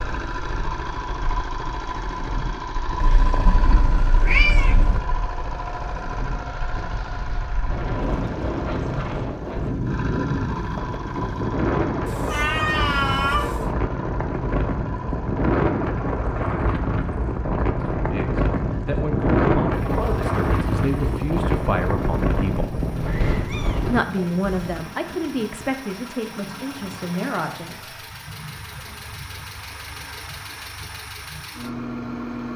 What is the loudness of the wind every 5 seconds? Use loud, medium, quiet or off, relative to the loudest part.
quiet, medium, loud, loud, loud, off, off.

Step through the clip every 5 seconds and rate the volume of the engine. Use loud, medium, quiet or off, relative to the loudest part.
loud, loud, loud, medium, medium, medium, loud.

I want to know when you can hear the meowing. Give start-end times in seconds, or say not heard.
3.0-5.0, 12.1-13.7, 23.1-24.9.